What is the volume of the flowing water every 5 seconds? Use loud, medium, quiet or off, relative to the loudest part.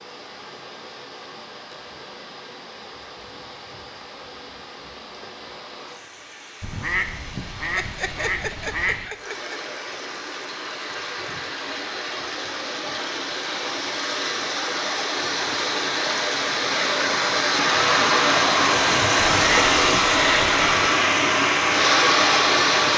quiet, quiet, medium, loud, loud.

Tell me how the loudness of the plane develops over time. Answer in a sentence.
The volume of the plane stays about the same.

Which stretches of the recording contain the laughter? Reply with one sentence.
You can hear the laughter from 7.8 to 9.7 s.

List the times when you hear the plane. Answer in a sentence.
You can hear the plane from 17.4 to 22.9 s.